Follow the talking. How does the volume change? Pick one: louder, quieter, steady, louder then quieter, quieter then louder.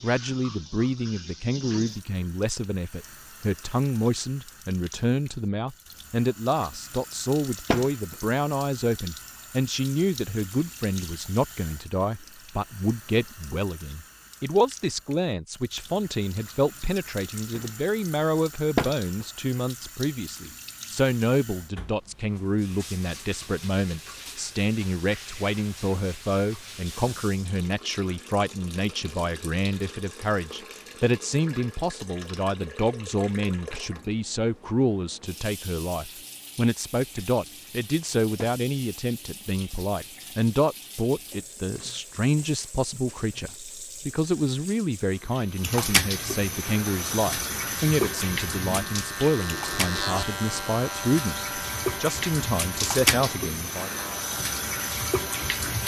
steady.